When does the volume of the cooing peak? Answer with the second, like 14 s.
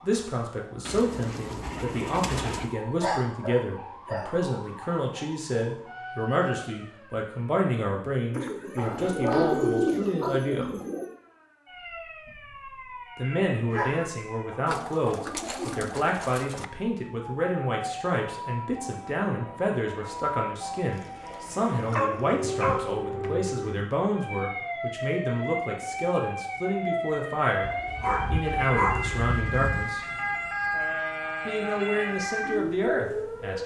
10 s.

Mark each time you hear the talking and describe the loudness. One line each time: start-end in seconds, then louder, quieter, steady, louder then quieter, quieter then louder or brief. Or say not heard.
0.0-10.7 steady
13.2-30.1 steady
31.4-33.6 brief.